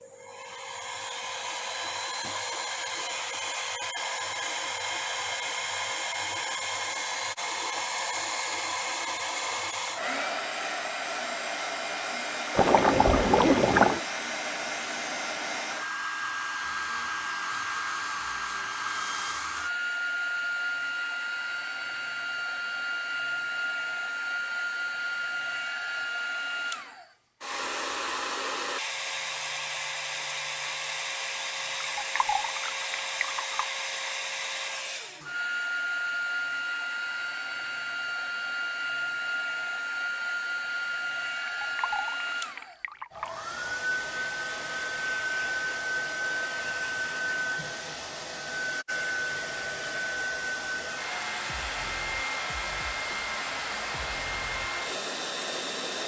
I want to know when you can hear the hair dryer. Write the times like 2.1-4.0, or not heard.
0.0-56.0.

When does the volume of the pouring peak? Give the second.
14 s.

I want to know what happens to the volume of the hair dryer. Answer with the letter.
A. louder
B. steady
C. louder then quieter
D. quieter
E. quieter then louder
B.